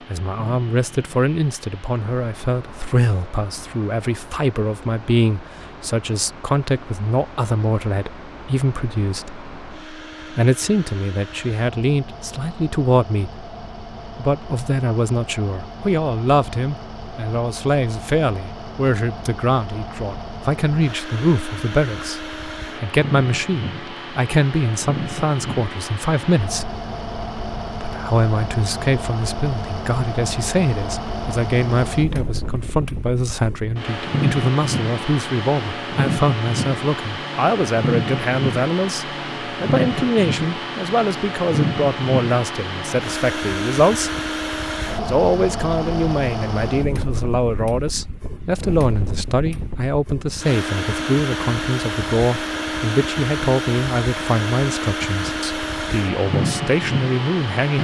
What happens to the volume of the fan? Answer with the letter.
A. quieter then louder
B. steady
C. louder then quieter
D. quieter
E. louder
E.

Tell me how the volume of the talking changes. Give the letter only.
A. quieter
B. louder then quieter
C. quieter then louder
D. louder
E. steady
E.